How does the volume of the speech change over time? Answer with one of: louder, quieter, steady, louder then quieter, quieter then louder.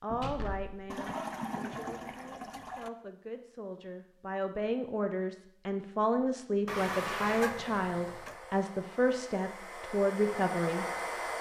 louder.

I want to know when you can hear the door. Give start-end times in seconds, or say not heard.
0.1-1.0.